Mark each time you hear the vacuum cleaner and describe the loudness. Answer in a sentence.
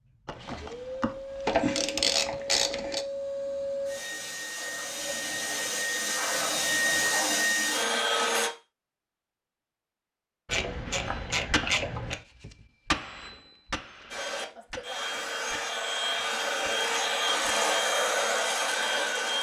The vacuum cleaner can be heard from 0.0 to 8.5 s, getting louder; and from 14.1 to 19.3 s, getting louder.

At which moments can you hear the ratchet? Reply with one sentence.
You can hear the ratchet from 0.2 to 3.0 s and from 10.4 to 12.2 s.